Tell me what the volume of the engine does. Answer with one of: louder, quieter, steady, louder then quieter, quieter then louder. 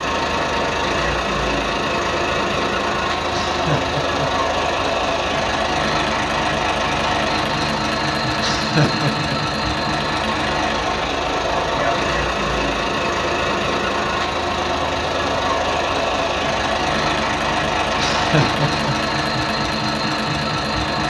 steady.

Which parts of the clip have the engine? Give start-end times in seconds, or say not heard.
0.0-21.0.